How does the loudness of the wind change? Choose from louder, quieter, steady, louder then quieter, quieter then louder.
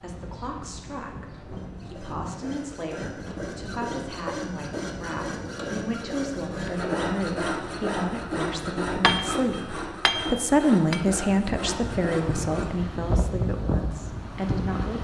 louder.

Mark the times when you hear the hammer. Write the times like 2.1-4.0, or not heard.
9.0-11.0.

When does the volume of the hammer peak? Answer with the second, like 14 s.
9 s.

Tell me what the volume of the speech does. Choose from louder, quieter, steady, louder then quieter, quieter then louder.
louder then quieter.